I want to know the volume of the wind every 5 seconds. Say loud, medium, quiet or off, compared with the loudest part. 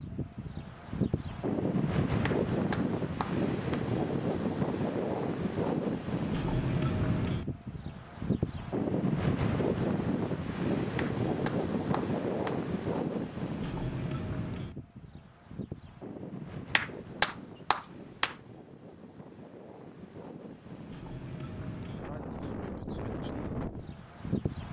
loud, loud, loud, quiet, medium.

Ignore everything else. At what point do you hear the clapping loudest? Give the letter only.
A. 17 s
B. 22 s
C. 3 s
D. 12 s
A.